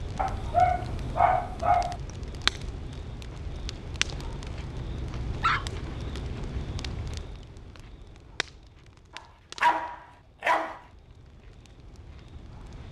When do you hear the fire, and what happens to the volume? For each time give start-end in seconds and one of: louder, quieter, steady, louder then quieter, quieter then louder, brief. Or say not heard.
0.0-12.8 quieter.